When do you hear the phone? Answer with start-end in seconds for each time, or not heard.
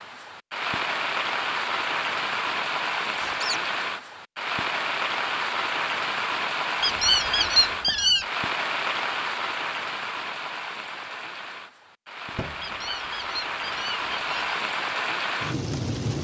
12.3-12.8.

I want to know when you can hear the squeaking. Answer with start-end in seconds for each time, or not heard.
3.1-3.6, 6.8-8.2, 12.6-14.6.